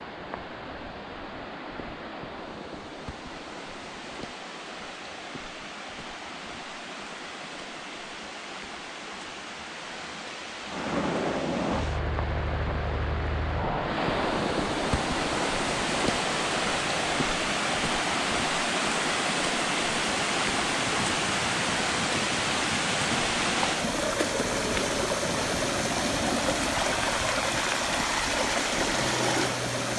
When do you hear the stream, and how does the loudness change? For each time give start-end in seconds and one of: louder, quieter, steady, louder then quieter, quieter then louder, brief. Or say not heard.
0.0-29.9 louder.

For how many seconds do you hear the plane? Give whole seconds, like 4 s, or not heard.
19 s.